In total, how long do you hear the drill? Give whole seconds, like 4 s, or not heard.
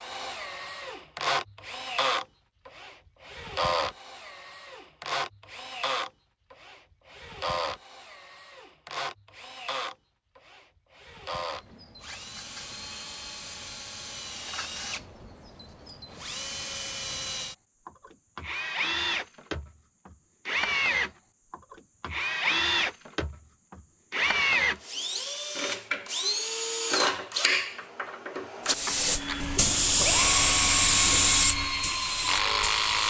33 s.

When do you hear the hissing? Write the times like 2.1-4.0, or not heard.
28.6-33.0.